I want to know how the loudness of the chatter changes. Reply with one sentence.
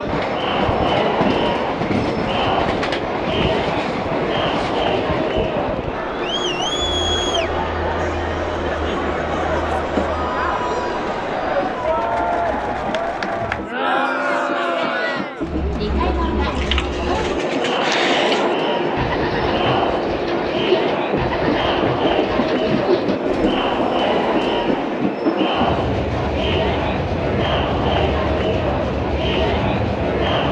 The volume of the chatter stays about the same.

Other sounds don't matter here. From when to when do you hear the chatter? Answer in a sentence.
The chatter can be heard from 0.0 to 30.4 s.